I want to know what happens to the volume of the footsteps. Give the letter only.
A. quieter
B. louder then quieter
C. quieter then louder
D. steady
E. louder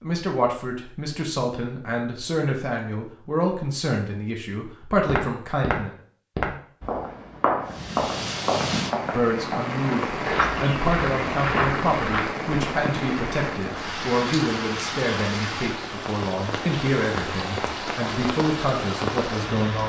D.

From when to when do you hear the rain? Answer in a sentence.
You can hear the rain from 7.7 to 19.8 s.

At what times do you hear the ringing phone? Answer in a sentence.
The ringing phone can't be heard in this clip.